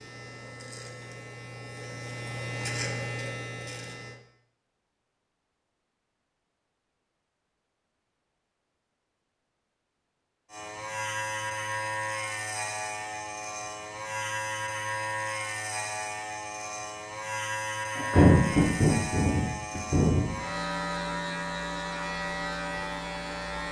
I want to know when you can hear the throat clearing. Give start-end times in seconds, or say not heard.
17.9-20.4.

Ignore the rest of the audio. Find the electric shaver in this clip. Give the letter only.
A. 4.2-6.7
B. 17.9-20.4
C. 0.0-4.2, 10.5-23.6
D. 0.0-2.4
C.